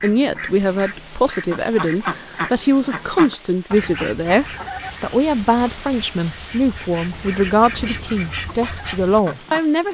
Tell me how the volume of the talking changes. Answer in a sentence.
The loudness of the talking stays about the same.